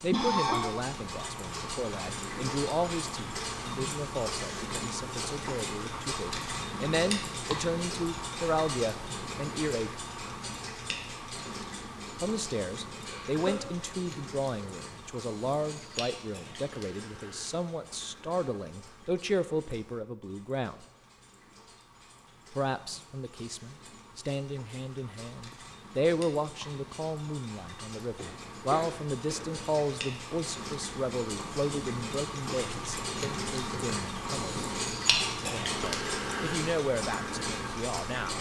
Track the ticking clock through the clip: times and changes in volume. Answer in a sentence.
You can hear the ticking clock from 0.0 to 38.3 s, getting quieter then louder.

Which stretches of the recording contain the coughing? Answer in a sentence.
You can hear the coughing from 0.1 to 0.7 s, from 13.1 to 13.6 s and from 28.1 to 29.6 s.